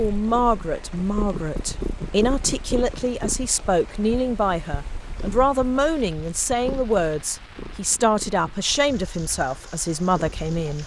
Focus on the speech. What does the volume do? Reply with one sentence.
The loudness of the speech stays about the same.